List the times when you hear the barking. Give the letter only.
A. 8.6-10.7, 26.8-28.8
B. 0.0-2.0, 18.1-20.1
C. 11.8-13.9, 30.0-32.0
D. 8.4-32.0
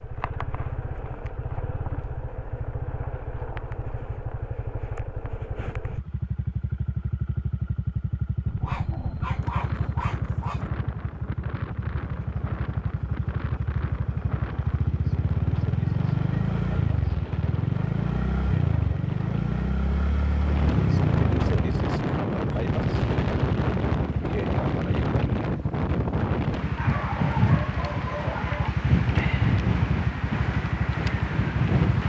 A.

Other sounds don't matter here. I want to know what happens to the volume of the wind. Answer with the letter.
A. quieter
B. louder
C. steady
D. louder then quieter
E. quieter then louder
B.